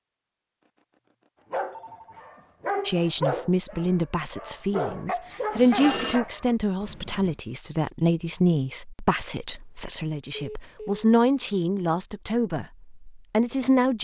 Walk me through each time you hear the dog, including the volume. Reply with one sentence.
The dog can be heard from 1.5 to 6.5 s, getting quieter then louder.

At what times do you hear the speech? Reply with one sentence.
You can hear the speech from 2.9 to 13.9 s.